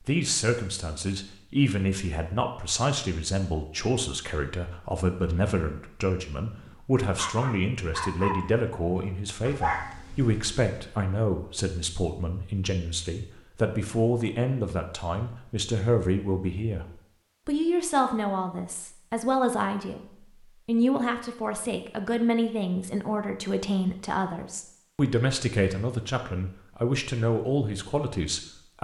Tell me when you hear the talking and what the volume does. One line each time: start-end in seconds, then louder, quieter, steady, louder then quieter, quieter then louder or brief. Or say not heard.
0.0-28.8 steady.